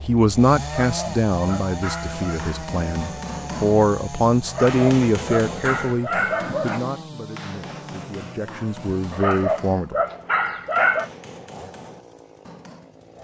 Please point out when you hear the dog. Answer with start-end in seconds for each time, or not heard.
0.7-2.4, 4.5-6.8, 9.1-11.1.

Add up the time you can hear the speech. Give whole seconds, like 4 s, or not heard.
10 s.